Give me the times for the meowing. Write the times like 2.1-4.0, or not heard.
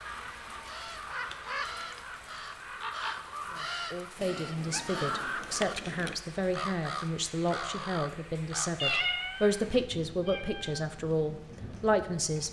0.1-2.0, 4.2-6.2, 8.8-10.8.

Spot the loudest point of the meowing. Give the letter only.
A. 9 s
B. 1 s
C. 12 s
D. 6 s
A.